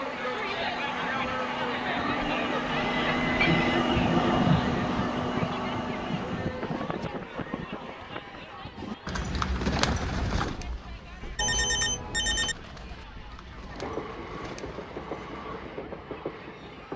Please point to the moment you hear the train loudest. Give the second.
4 s.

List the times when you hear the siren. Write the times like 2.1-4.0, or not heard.
not heard.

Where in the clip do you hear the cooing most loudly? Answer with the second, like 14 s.
10 s.